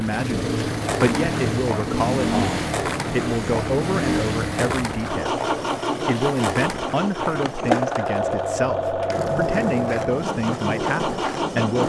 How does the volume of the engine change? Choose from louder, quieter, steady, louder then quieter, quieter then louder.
steady.